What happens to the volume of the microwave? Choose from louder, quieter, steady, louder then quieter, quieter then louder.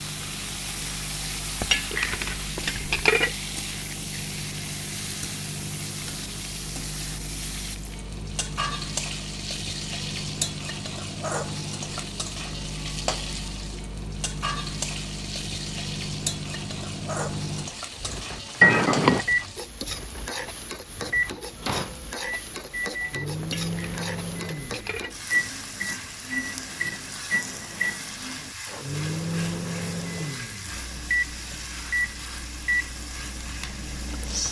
louder.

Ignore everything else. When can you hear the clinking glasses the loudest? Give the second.
19 s.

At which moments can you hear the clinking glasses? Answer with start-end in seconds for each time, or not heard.
1.6-3.3, 18.6-19.2, 23.4-25.1.